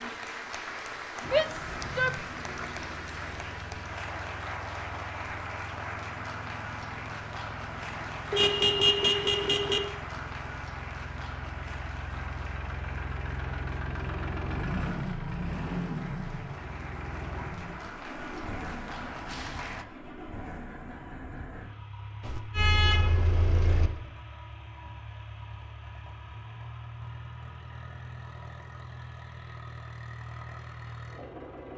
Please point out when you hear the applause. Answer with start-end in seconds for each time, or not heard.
0.0-19.9.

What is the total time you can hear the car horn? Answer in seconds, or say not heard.
3 s.